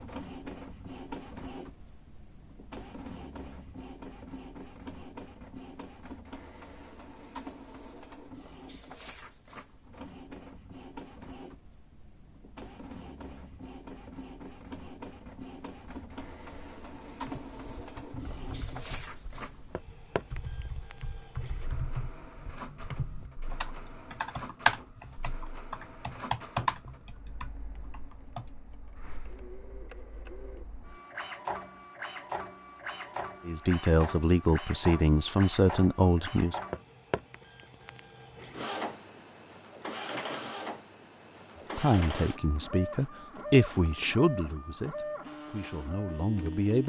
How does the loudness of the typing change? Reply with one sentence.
The loudness of the typing goes up.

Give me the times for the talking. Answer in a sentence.
The talking can be heard from 33.5 to 36.5 s and from 41.8 to 46.8 s.